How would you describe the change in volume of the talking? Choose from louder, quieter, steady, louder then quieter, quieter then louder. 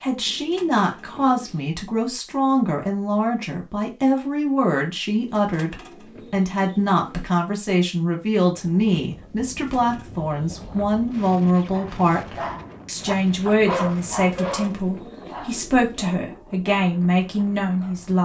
steady.